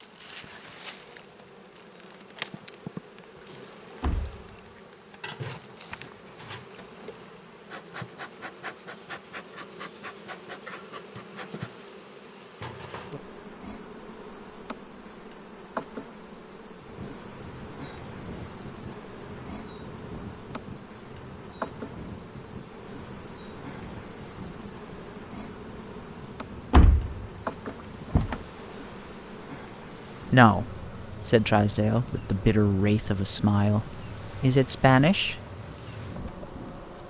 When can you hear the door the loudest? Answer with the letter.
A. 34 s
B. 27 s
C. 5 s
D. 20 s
B.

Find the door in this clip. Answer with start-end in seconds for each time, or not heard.
4.0-4.4, 26.7-28.4.